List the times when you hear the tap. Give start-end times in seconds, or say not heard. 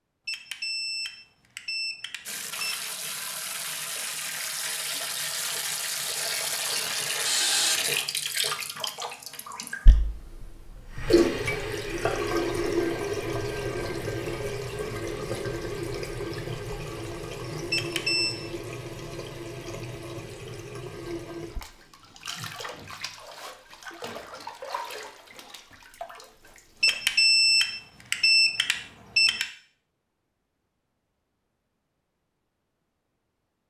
2.2-27.1.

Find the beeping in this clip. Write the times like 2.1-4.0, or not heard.
0.2-2.9, 17.7-18.4, 26.8-29.4.